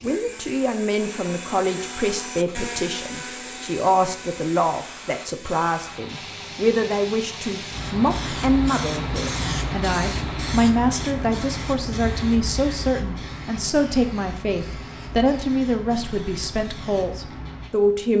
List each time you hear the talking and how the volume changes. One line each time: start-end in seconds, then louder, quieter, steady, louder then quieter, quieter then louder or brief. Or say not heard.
0.0-18.1 steady.